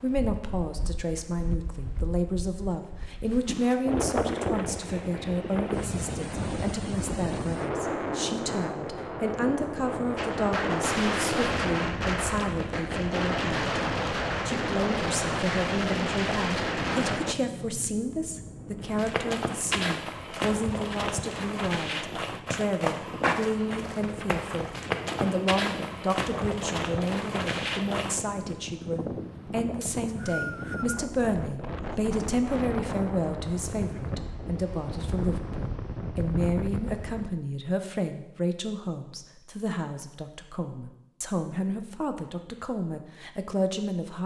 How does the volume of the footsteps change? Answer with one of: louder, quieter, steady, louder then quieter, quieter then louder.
steady.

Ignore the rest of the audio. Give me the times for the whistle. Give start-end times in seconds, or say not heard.
29.8-31.1.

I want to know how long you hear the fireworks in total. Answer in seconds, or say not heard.
7 s.